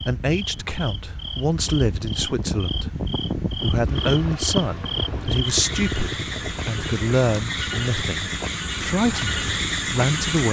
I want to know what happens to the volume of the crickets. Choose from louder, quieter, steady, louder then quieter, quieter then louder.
louder.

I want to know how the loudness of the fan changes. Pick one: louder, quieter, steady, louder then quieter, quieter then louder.
louder then quieter.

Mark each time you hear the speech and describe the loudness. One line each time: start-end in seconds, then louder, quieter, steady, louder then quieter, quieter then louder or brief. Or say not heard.
0.0-10.4 steady.